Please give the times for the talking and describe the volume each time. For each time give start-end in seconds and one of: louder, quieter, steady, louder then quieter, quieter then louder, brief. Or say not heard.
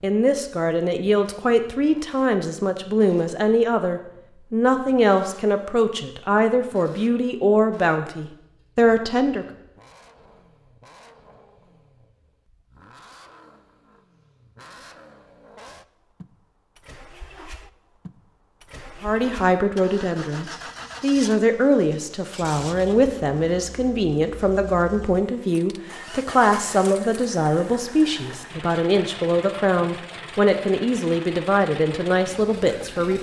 0.0-9.4 steady
19.0-33.1 steady.